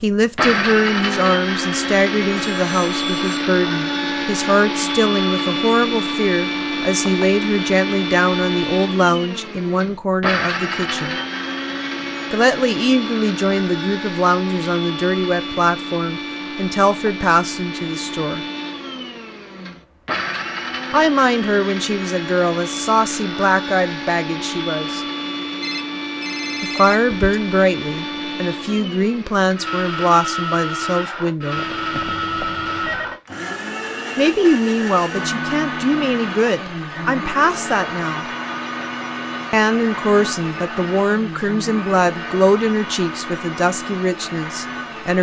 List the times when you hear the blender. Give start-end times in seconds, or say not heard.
0.0-45.1.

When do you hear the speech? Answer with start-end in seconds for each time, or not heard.
0.0-11.2, 12.3-18.4, 20.9-25.0, 26.6-31.6, 34.1-38.2, 39.5-45.1.